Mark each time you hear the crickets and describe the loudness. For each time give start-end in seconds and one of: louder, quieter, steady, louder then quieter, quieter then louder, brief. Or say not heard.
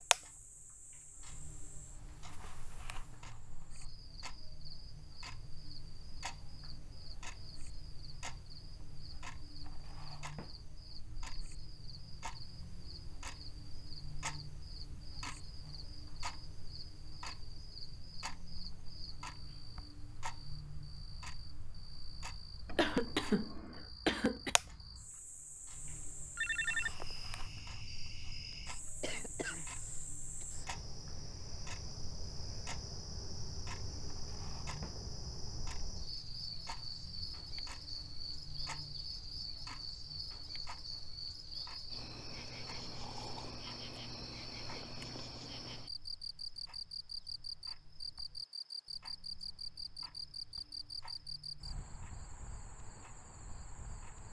0.1-54.2 louder.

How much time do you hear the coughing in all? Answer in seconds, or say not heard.
3 s.